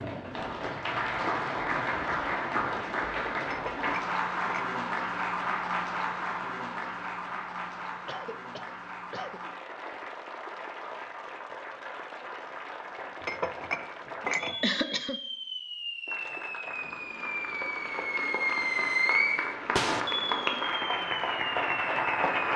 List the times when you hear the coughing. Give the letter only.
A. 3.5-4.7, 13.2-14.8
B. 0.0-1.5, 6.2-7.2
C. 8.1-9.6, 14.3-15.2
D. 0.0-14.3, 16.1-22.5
C.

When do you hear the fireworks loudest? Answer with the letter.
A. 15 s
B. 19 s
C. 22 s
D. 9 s
B.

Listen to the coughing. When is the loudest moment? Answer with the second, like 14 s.
15 s.